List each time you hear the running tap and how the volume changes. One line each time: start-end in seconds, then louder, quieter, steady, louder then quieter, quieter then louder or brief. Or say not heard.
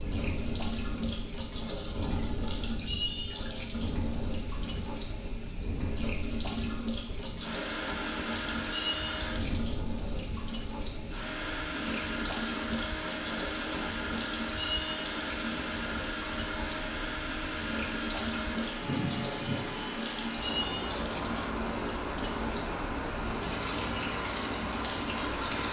0.0-25.6 steady.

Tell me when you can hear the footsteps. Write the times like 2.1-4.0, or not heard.
not heard.